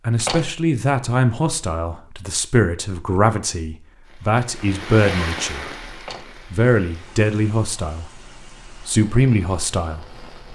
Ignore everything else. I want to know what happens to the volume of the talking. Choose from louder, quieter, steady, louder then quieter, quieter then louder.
steady.